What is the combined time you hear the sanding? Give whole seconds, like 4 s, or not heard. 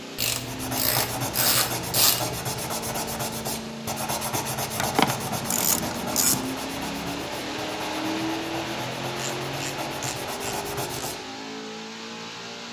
11 s.